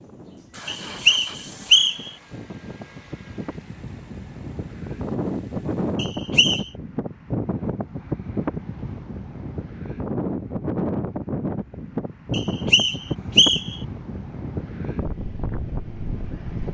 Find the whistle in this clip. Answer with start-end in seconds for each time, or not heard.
0.7-2.1, 6.0-6.7, 12.3-13.8.